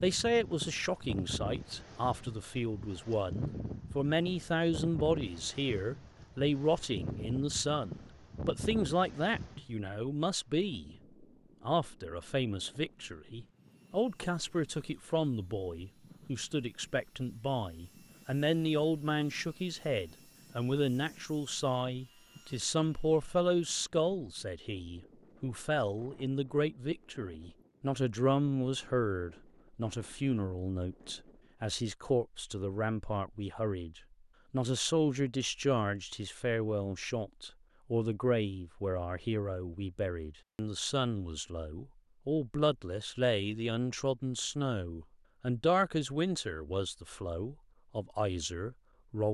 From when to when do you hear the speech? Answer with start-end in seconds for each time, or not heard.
0.0-10.9, 11.6-49.2.